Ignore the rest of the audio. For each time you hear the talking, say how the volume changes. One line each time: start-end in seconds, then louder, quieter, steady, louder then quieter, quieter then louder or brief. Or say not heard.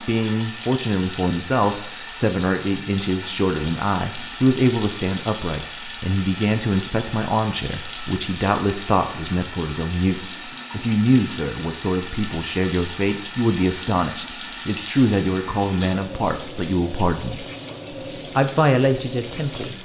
0.0-17.4 steady
18.4-19.7 brief.